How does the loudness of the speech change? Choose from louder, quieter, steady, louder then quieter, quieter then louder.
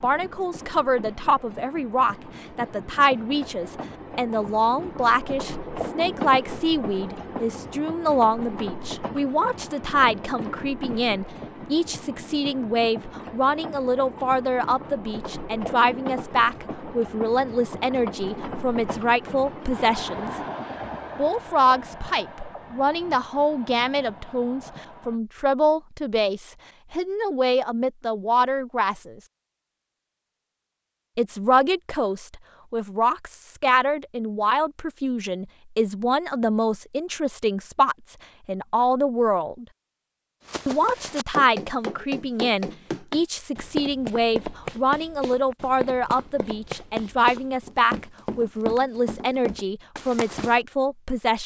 steady.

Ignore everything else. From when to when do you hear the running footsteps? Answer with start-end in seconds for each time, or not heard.
40.5-50.6.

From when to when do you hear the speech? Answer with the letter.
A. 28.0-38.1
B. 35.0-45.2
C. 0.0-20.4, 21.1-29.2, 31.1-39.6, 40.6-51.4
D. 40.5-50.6
C.